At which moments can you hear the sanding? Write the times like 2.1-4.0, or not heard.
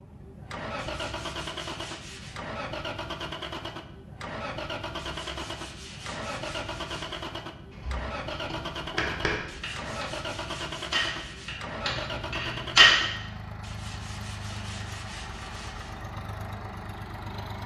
0.8-2.4, 5.0-7.3, 9.4-11.7, 13.6-16.1.